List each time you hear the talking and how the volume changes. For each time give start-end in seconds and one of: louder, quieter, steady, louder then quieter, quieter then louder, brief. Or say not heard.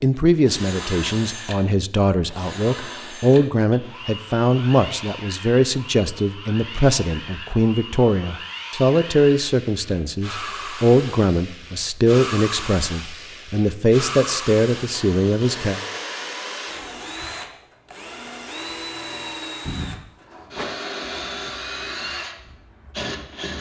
0.0-15.8 steady.